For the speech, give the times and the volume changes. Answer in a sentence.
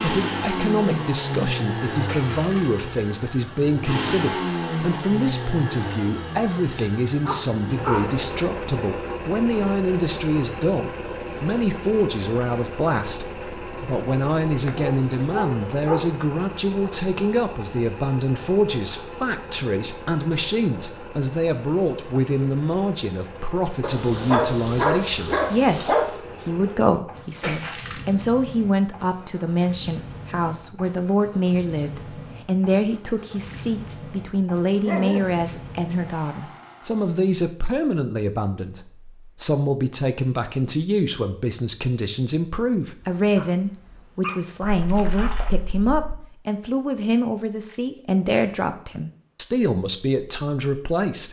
You can hear the speech from 0.0 to 51.2 s, at a steady volume.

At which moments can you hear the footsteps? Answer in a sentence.
The footsteps can't be heard in this clip.